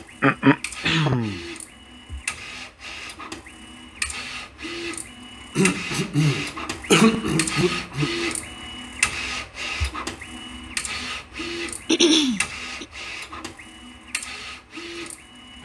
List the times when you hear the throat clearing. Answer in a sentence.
You can hear the throat clearing from 0.2 to 1.4 s, from 5.5 to 8.1 s and from 11.8 to 12.8 s.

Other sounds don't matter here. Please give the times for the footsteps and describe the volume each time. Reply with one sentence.
You can't hear the footsteps here.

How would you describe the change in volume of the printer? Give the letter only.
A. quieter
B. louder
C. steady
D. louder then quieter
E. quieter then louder
D.